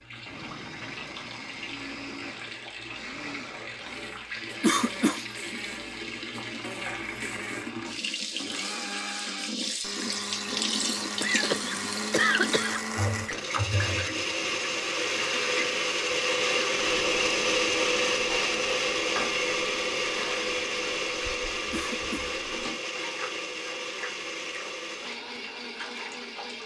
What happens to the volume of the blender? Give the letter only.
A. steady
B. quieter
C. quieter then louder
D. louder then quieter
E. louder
D.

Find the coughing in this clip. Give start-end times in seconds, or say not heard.
4.6-5.2, 11.2-12.8, 21.7-22.4.